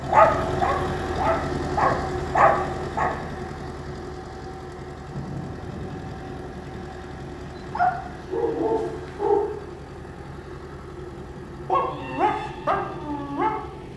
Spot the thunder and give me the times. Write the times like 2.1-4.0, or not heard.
5.0-8.6.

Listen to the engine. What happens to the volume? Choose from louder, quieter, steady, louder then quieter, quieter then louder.
quieter.